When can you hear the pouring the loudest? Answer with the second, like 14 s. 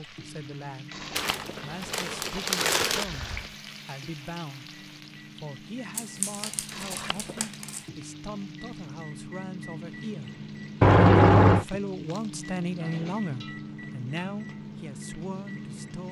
11 s.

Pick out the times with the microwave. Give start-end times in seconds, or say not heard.
0.0-16.0.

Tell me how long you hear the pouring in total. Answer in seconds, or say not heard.
4 s.